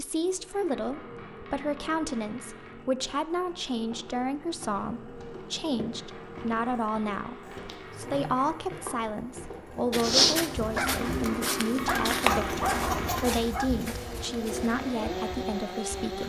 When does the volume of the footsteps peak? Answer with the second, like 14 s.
10 s.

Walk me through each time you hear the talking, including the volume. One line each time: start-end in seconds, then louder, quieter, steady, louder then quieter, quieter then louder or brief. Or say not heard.
0.0-16.2 steady.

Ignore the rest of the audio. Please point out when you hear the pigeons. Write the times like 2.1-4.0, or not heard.
10.6-16.2.